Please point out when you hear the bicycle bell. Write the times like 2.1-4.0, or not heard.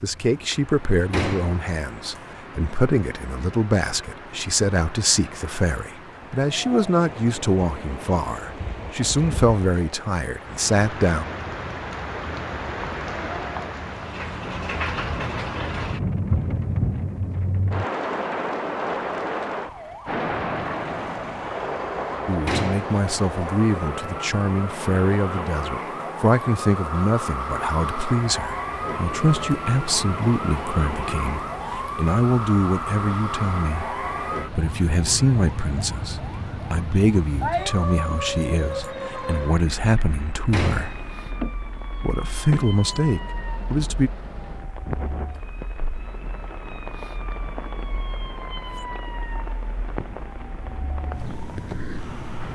not heard.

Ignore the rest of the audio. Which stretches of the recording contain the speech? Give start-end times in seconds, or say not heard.
0.0-11.2, 22.2-41.0, 42.0-44.1.